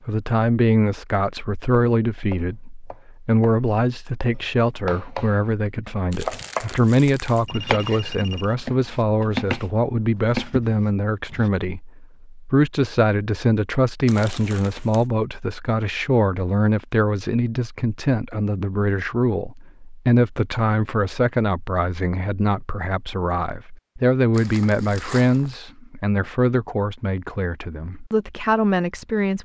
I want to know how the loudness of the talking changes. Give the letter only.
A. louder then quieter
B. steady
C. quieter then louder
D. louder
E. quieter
B.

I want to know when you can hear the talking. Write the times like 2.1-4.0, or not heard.
0.1-29.4.